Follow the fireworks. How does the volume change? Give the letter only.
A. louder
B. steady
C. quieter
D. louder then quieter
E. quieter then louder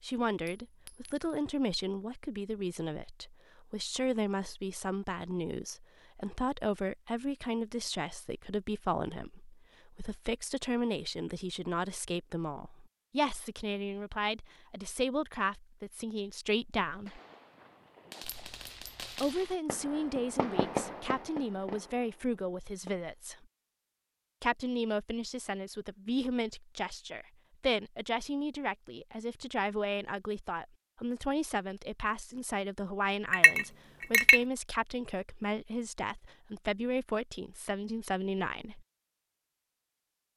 D.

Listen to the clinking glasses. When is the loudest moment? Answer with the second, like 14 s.
34 s.